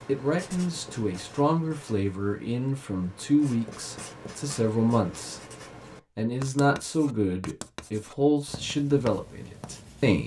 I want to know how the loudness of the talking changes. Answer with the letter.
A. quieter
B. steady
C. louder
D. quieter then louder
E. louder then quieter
B.